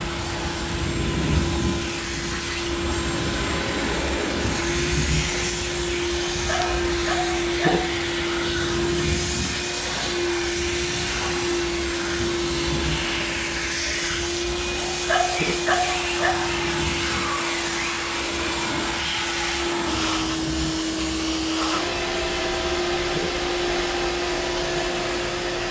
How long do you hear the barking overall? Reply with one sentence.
The barking can be heard for 3 seconds in total.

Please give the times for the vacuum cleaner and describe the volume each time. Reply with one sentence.
The vacuum cleaner can be heard from 0.0 to 25.6 s, at a steady volume.